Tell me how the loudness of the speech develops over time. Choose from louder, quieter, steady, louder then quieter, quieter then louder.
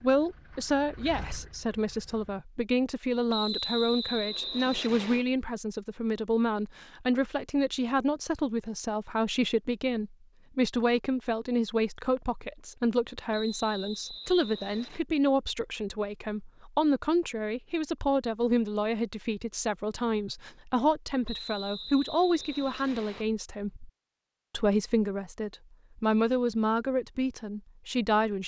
steady.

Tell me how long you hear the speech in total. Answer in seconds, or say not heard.
28 s.